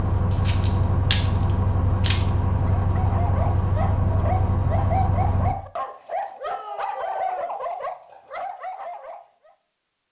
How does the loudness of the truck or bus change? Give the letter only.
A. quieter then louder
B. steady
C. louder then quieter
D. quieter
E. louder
B.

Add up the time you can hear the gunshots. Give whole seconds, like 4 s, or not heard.
2 s.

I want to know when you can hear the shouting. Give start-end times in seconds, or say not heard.
6.5-7.5.